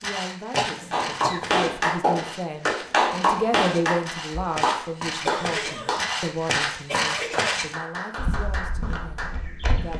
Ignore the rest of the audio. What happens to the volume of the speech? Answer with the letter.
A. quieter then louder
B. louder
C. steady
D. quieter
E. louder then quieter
E.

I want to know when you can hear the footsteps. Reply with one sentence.
The footsteps can be heard from 0.0 to 9.9 s.